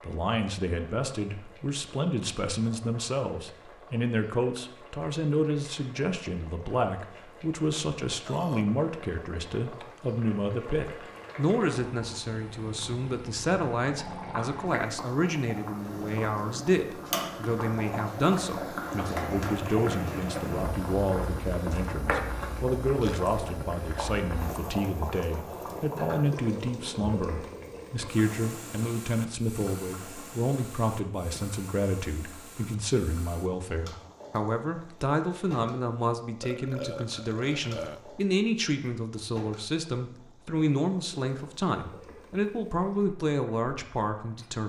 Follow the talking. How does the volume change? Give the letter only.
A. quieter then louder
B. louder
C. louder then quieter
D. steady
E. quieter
D.